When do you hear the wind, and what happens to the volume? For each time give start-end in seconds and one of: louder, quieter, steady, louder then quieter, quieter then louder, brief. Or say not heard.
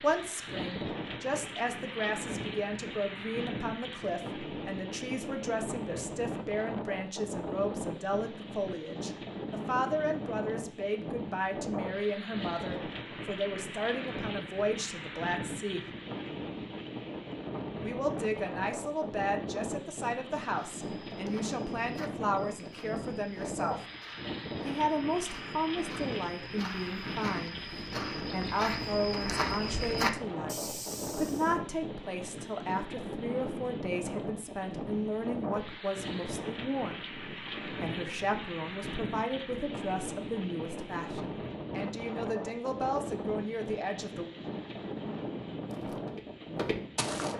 0.0-47.3 steady.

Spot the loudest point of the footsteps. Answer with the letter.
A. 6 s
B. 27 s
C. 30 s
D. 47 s
C.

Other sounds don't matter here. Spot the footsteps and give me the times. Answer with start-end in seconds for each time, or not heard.
20.5-31.6, 45.6-47.3.